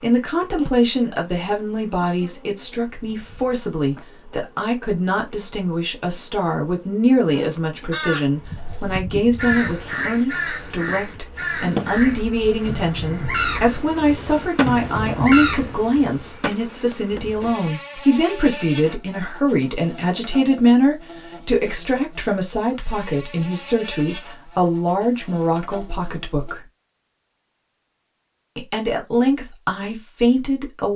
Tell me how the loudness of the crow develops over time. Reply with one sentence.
The volume of the crow goes up.